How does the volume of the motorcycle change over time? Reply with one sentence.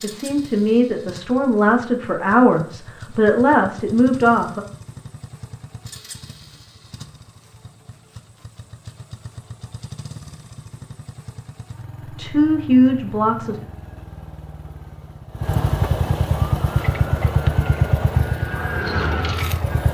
The loudness of the motorcycle goes up.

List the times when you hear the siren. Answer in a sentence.
The siren can be heard from 16.6 to 19.8 s.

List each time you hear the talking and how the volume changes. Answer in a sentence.
You can hear the talking from 0.0 to 4.7 s, at a steady volume; and briefly from 12.1 to 13.6 s.